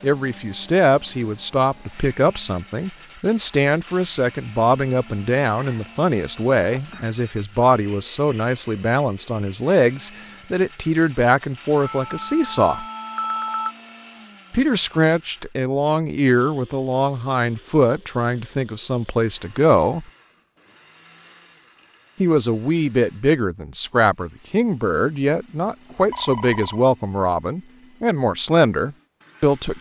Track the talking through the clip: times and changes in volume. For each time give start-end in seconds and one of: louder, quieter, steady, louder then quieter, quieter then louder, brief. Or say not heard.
0.0-12.8 steady
14.5-20.1 steady
22.2-29.7 steady.